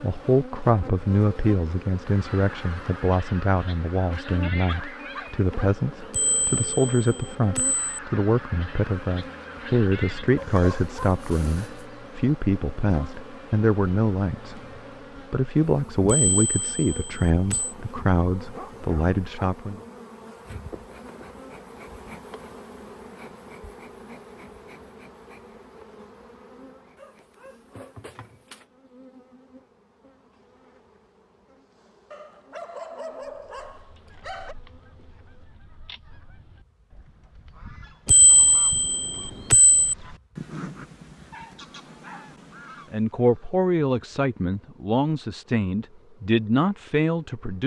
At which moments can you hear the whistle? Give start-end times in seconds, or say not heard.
not heard.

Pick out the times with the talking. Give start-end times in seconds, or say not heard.
0.0-14.6, 15.3-19.8, 42.9-47.6.